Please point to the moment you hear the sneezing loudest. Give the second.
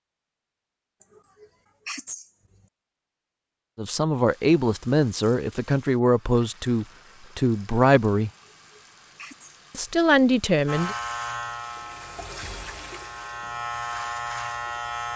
2 s.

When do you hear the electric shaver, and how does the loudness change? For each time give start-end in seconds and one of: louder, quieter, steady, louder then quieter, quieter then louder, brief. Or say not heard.
10.7-15.1 quieter then louder.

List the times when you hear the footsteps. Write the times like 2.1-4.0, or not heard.
not heard.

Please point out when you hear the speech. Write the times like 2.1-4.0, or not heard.
3.8-8.3, 9.8-10.9.